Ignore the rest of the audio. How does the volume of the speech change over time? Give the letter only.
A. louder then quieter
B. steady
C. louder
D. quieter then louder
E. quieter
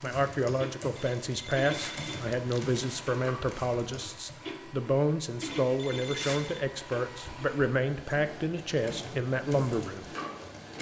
B.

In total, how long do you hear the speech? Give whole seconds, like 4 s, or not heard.
10 s.